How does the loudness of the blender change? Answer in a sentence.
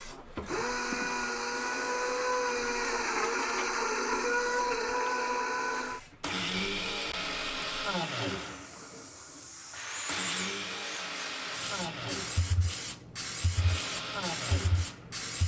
The volume of the blender goes down.